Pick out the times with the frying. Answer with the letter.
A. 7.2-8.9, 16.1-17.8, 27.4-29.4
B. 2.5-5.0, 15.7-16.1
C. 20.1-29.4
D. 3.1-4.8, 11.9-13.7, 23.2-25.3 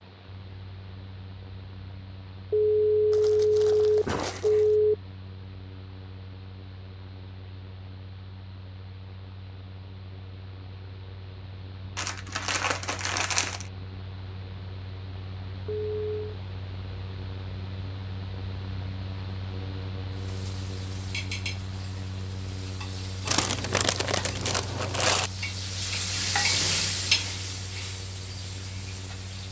C.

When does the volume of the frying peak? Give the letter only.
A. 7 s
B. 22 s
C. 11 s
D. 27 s
D.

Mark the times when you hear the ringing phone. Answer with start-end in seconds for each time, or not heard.
2.5-5.0, 15.7-16.1.